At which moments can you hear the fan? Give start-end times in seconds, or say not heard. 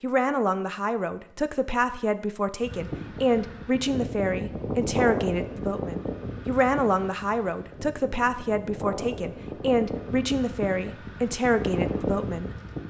2.6-12.8.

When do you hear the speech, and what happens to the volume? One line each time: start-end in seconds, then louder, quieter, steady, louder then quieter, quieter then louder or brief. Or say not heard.
0.0-12.8 steady.